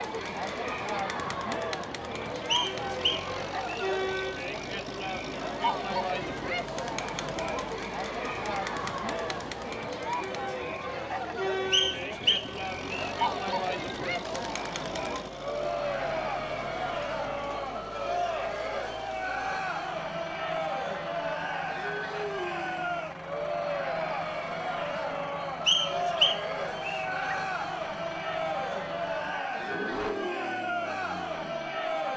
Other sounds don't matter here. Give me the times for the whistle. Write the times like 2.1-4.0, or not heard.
2.5-3.9, 11.7-13.1, 25.6-27.1.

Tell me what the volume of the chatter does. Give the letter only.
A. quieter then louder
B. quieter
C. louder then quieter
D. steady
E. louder
D.